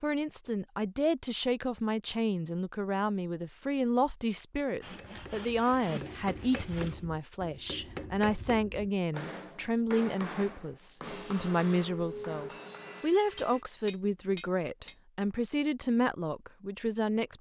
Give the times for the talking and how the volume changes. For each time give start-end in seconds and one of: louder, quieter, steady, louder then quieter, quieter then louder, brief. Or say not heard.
0.0-17.3 steady.